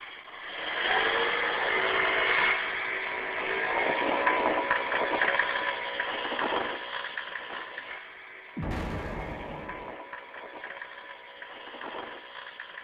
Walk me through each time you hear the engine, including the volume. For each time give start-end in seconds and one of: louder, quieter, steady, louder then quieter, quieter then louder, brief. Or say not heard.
0.0-12.7 quieter.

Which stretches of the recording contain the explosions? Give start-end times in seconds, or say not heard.
8.6-9.9.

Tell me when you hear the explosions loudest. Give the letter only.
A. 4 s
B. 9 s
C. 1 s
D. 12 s
B.